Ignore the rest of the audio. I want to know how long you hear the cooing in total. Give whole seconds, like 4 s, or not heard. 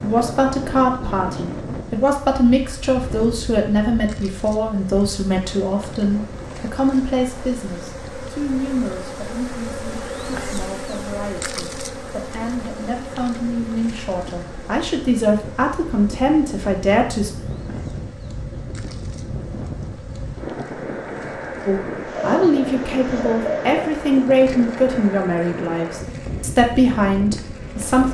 2 s.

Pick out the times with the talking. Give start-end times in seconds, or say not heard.
0.0-17.3, 21.6-28.0.